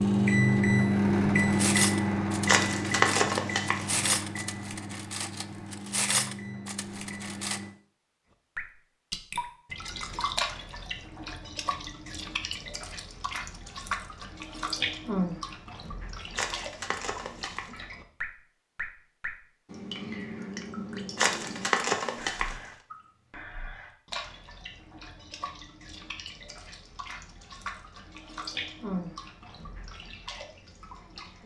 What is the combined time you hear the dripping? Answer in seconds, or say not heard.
23 s.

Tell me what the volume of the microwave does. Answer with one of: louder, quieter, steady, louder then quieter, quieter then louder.
quieter.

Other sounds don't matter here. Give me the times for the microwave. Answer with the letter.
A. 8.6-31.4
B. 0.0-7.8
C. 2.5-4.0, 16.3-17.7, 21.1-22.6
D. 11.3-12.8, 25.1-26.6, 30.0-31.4
B.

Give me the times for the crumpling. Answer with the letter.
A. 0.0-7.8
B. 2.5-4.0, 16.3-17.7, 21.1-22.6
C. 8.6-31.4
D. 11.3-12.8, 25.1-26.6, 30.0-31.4
B.